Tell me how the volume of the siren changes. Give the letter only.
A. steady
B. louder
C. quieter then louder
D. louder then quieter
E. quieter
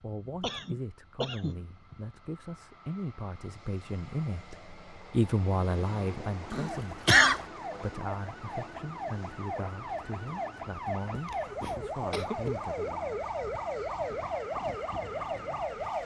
B.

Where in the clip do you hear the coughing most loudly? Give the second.
7 s.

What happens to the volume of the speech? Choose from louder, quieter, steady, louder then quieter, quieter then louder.
louder then quieter.